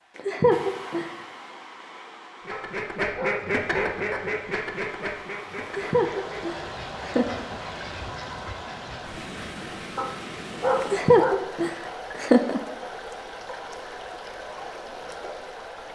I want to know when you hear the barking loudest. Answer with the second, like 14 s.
11 s.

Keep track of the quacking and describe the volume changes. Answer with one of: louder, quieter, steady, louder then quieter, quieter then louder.
quieter.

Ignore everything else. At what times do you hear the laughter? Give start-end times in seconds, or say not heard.
0.1-1.2, 5.7-7.5, 10.8-12.6.